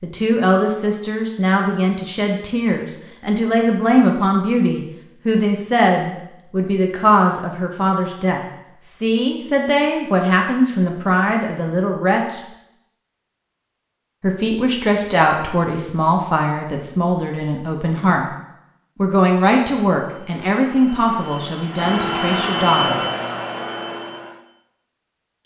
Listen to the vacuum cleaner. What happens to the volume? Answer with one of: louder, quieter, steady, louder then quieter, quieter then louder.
louder then quieter.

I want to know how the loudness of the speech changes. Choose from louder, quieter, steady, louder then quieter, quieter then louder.
steady.